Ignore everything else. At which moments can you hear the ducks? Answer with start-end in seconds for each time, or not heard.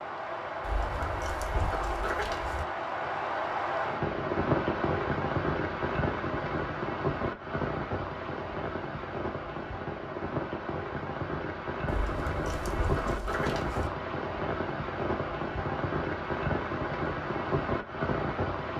0.6-2.6, 11.8-13.9.